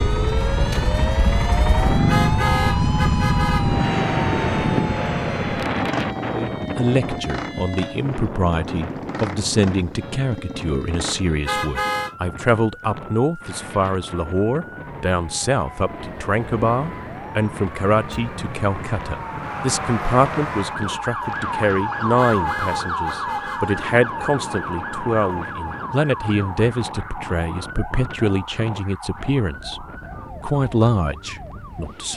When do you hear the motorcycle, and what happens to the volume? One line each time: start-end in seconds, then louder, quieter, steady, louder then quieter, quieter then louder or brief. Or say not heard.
0.0-11.2 quieter.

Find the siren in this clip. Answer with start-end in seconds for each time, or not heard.
0.0-8.0, 9.9-32.1.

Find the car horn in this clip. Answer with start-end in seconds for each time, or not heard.
2.0-3.8, 11.4-12.2, 22.1-23.6.